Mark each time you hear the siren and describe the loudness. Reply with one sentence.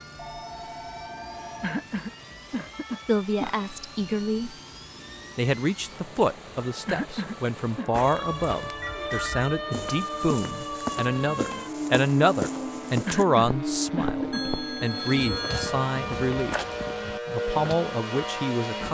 The siren can be heard from 0.0 to 18.8 s, getting louder.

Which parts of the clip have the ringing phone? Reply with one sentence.
You can hear the ringing phone from 0.1 to 1.9 s, from 8.8 to 9.5 s and from 14.3 to 15.8 s.